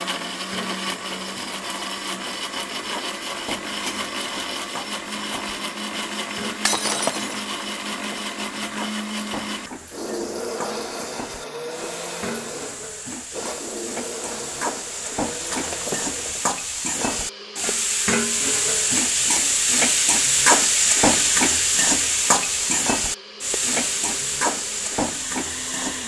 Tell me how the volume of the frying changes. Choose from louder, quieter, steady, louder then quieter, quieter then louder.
louder.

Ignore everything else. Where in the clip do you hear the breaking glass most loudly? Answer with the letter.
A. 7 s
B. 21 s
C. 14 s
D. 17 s
A.